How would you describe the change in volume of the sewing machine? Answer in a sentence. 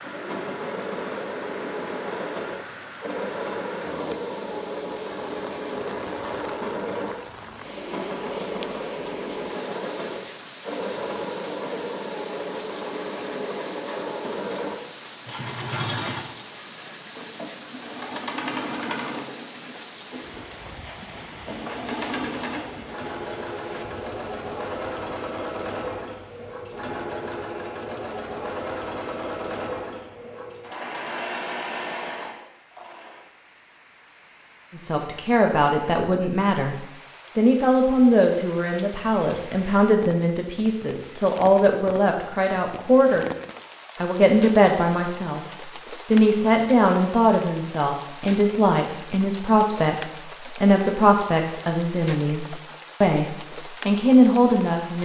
The volume of the sewing machine stays about the same.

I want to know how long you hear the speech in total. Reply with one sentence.
You can hear the speech for 19 seconds altogether.